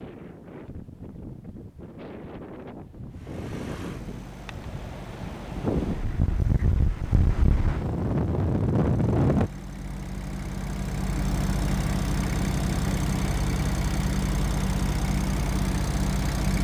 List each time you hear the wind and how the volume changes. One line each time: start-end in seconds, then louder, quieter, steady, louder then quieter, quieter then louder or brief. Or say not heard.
0.0-9.5 louder.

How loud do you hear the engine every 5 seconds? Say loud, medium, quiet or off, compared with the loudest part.
quiet, quiet, loud, loud.